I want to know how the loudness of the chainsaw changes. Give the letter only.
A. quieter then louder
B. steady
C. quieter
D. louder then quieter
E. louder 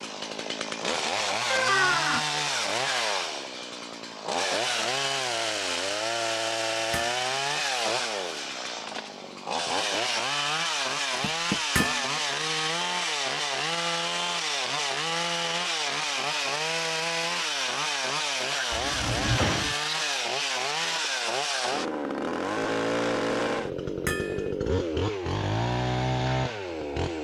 B.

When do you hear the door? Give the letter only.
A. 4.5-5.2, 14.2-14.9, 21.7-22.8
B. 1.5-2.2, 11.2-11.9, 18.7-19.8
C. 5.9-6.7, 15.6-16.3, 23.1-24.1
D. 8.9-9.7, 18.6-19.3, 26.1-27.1
B.